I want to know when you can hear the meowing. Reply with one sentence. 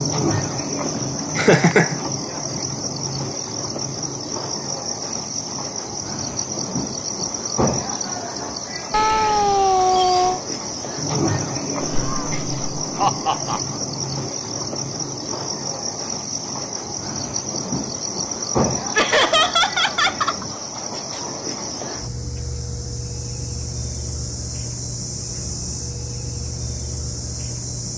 You can hear the meowing from 8.9 to 10.4 s.